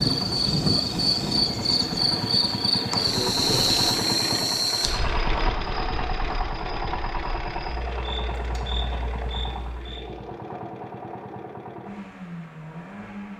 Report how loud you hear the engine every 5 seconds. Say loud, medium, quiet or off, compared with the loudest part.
loud, loud, medium.